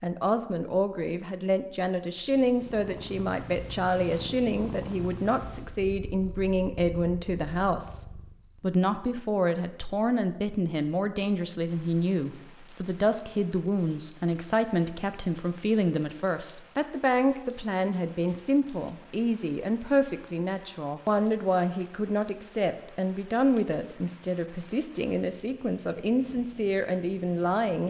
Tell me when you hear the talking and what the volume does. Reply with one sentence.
You can hear the talking from 0.0 to 27.8 s, at a steady volume.